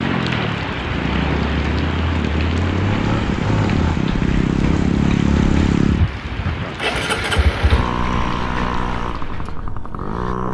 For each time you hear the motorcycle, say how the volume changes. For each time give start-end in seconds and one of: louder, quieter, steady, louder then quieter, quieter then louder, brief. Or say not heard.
0.0-10.4 louder then quieter.